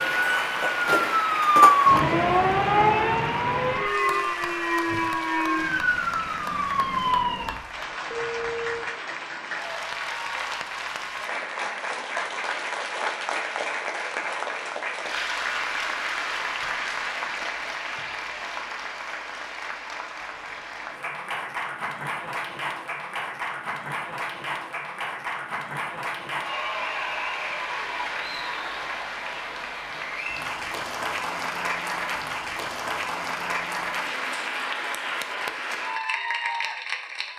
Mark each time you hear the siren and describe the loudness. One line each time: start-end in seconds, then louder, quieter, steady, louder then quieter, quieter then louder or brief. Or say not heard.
0.0-8.8 quieter.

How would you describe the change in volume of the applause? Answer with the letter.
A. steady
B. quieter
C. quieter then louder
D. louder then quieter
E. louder
A.